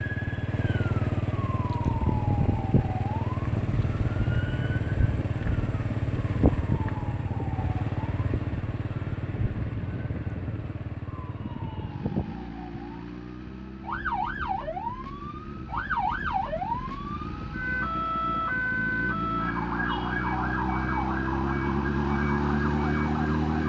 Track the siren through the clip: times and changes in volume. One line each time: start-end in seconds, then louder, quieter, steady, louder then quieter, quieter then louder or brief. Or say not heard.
0.0-23.6 louder.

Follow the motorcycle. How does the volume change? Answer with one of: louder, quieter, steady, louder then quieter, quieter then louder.
quieter then louder.